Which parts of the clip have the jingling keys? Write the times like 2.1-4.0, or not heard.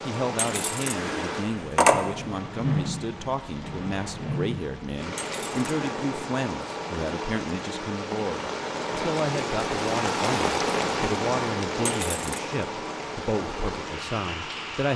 0.3-2.0, 5.2-5.9, 11.8-12.4.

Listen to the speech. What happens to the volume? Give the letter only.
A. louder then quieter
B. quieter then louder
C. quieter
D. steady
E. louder
D.